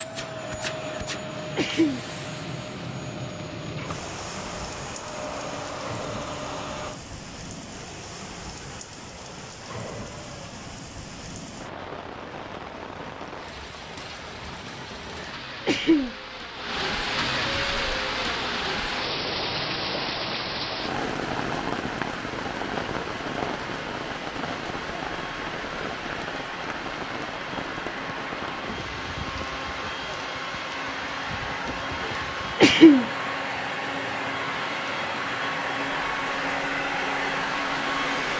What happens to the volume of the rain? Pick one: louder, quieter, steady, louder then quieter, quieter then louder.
louder then quieter.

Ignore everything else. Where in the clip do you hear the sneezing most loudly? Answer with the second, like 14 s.
33 s.